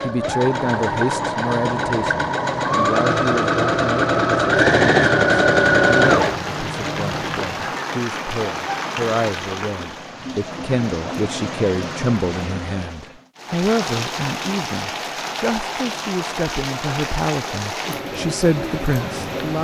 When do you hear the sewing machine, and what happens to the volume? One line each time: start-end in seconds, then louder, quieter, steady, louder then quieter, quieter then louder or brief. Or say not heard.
0.0-7.8 louder then quieter.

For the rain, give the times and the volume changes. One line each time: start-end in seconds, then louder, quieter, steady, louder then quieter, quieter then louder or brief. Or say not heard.
6.0-19.5 steady.